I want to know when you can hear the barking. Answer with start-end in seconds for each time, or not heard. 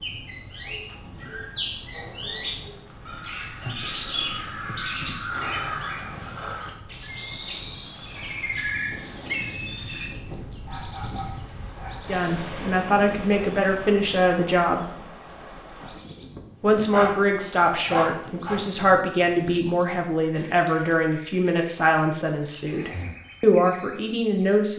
0.5-2.9, 10.7-12.2, 16.8-18.6.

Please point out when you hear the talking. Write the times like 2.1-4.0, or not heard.
12.1-14.8, 16.6-24.7.